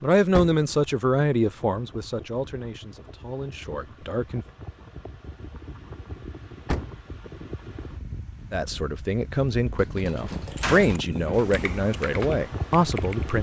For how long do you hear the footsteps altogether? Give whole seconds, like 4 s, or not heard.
not heard.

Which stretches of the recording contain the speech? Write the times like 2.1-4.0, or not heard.
0.0-4.5, 8.5-13.3.